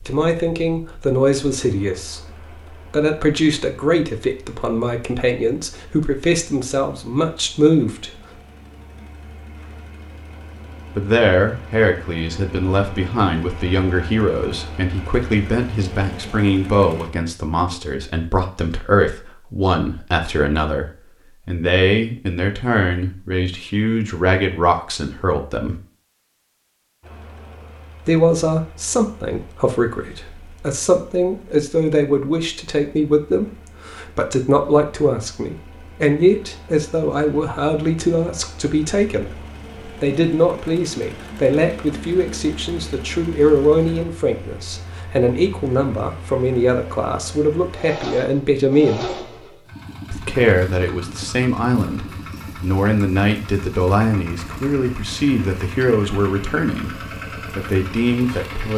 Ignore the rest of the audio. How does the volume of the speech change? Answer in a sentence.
The volume of the speech stays about the same.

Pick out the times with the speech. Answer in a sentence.
You can hear the speech from 0.1 to 8.2 s, from 10.9 to 25.8 s, from 28.1 to 39.4 s, from 40.0 to 49.1 s and from 50.1 to 58.7 s.